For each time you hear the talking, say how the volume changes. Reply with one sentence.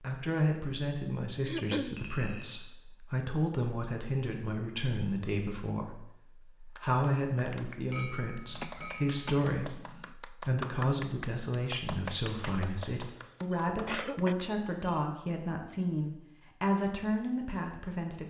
The talking can be heard from 0.0 to 18.2 s, at a steady volume.